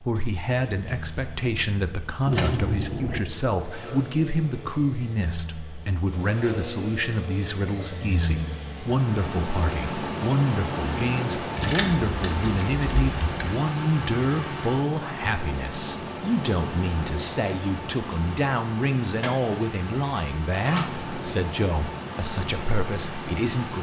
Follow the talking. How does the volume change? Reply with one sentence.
The loudness of the talking stays about the same.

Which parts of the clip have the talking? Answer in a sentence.
You can hear the talking from 0.0 to 23.7 s.